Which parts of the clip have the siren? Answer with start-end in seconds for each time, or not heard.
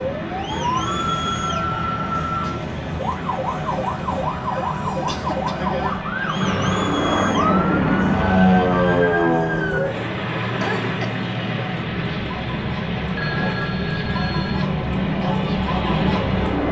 0.0-10.1.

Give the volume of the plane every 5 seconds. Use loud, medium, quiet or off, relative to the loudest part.
quiet, loud, medium, loud.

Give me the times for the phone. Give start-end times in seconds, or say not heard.
0.8-2.5, 13.2-14.7.